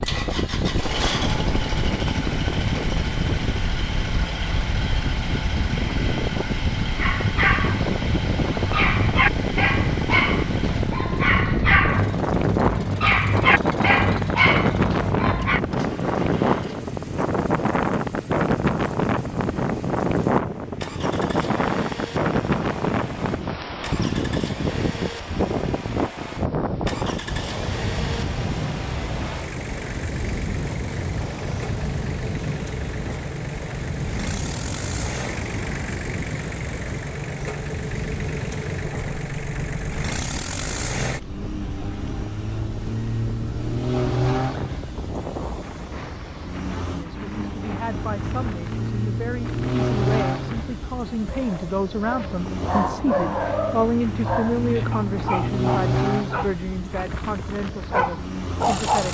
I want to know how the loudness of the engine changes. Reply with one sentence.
The volume of the engine goes down, then up.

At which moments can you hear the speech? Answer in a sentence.
The speech can be heard from 46.9 to 59.1 s.